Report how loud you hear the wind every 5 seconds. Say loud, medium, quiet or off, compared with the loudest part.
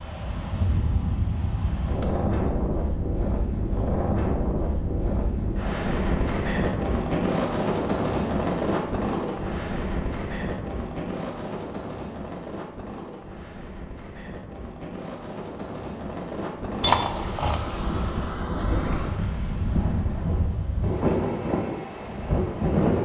loud, loud, medium, medium, loud.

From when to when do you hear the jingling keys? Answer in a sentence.
The jingling keys can be heard from 2.0 to 2.7 s and from 16.8 to 17.6 s.